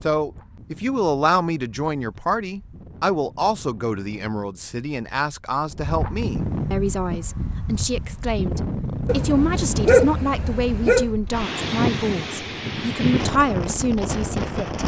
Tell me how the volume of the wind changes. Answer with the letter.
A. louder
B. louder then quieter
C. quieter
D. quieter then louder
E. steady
A.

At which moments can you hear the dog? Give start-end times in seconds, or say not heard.
9.1-11.1.